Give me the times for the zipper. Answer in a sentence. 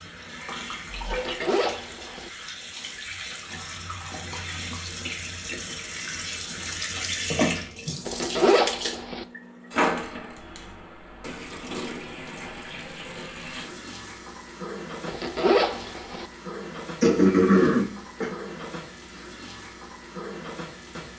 You can hear the zipper from 1.1 to 2.3 s, from 8.1 to 9.2 s and from 15.1 to 16.2 s.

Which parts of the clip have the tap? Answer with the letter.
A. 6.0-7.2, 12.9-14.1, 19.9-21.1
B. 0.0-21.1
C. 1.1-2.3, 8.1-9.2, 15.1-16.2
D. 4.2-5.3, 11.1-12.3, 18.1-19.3
B.